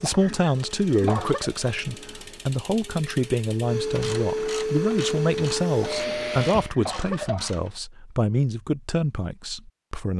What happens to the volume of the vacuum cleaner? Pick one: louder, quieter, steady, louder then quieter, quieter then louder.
louder.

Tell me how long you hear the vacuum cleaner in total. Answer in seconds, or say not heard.
7 s.